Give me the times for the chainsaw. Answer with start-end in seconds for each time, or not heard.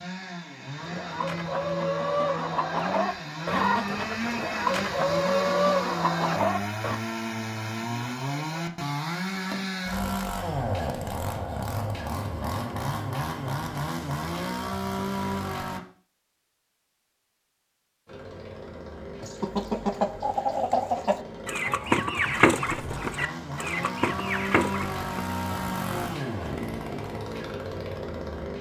0.0-15.8, 18.1-28.5.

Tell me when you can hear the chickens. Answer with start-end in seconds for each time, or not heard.
0.8-7.0, 19.2-25.4.